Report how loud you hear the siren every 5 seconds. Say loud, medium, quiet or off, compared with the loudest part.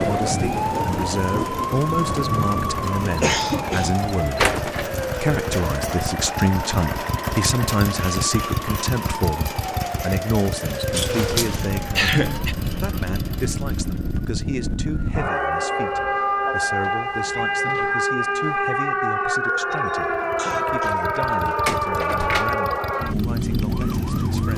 loud, medium, medium, loud, loud.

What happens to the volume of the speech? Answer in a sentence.
The volume of the speech goes down.